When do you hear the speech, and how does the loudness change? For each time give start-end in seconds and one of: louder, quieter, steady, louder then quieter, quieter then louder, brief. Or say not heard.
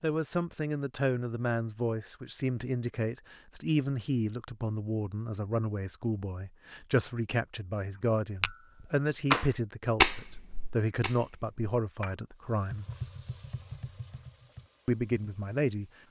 0.0-12.8 steady
14.8-15.9 brief.